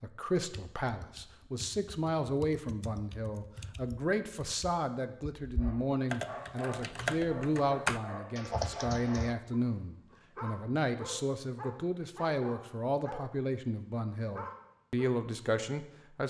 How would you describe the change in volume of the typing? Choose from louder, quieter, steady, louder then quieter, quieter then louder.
louder.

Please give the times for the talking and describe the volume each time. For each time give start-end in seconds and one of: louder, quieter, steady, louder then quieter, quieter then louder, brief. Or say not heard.
0.0-16.2 steady.